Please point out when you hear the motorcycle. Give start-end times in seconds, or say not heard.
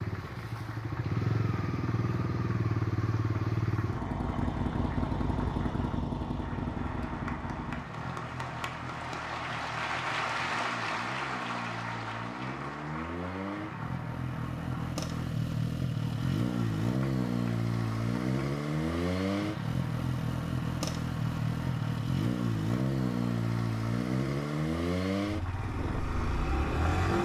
0.0-27.1.